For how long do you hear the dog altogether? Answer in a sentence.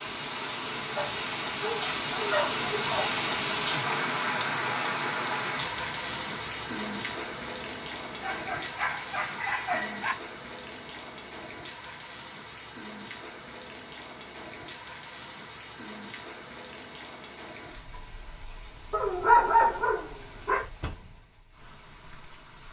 The dog can be heard for 6 seconds in total.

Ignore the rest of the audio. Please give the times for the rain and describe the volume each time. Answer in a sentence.
The rain can be heard from 0.0 to 22.6 s, getting quieter.